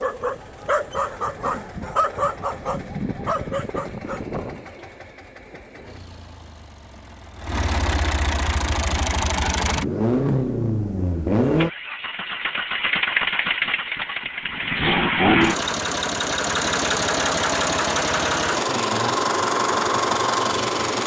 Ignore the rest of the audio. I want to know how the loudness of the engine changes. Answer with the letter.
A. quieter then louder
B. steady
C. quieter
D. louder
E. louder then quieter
D.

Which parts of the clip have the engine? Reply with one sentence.
The engine can be heard from 0.0 to 21.0 s.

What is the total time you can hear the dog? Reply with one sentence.
You can hear the dog for 5 seconds altogether.